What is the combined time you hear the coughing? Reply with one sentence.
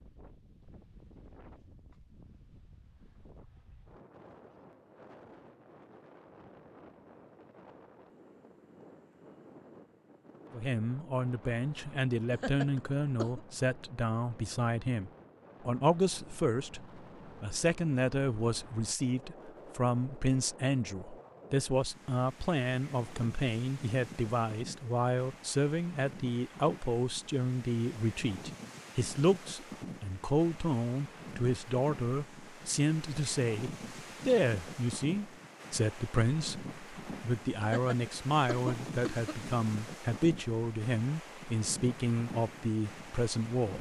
You can hear the coughing for 3 seconds altogether.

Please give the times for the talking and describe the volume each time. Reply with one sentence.
The talking can be heard from 10.5 to 43.7 s, at a steady volume.